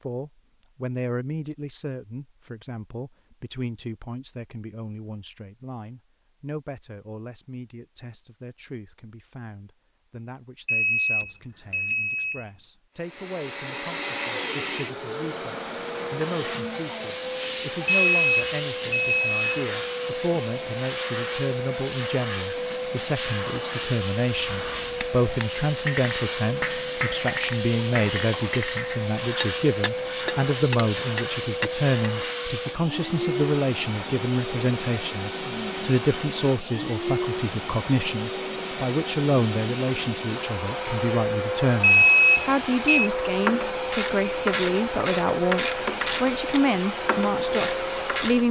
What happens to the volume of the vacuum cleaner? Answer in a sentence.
The volume of the vacuum cleaner stays about the same.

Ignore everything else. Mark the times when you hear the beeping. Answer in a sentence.
You can hear the beeping from 10.7 to 12.4 s, from 17.9 to 19.4 s and from 41.8 to 43.1 s.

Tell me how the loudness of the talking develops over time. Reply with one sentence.
The volume of the talking goes up.